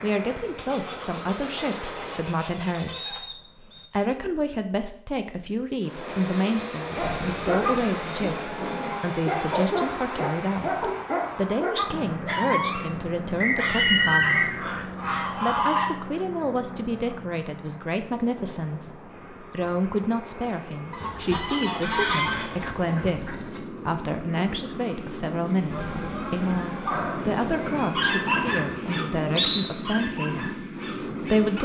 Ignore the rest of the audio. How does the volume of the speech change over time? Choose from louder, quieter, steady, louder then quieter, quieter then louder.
steady.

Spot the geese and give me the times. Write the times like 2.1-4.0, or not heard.
0.6-3.2, 7.0-9.1, 13.6-15.9, 20.9-23.6, 25.7-28.5.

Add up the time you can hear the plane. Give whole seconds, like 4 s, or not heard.
28 s.